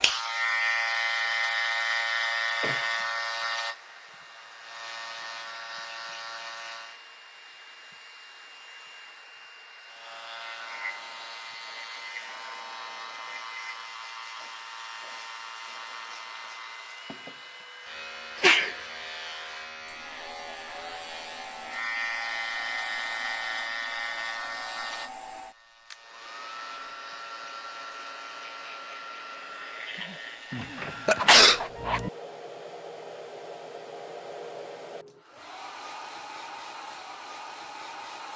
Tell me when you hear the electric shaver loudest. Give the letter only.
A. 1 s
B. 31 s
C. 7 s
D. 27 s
A.